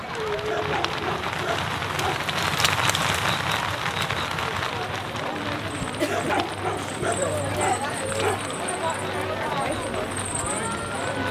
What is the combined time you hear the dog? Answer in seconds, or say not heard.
4 s.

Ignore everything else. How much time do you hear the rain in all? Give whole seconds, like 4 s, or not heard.
11 s.